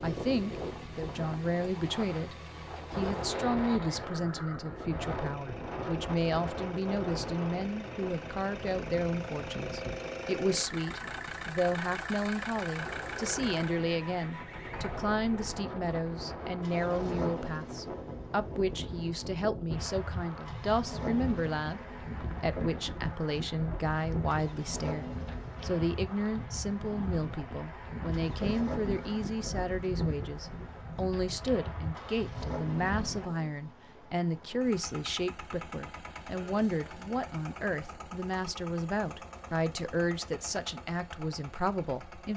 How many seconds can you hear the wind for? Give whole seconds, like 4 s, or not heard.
33 s.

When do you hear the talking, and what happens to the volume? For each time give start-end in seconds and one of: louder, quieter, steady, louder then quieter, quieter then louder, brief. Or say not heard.
0.0-42.3 steady.